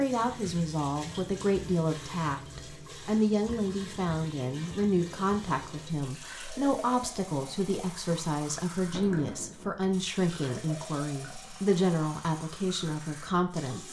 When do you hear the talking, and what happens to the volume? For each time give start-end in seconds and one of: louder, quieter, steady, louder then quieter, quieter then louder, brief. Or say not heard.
0.0-13.8 steady.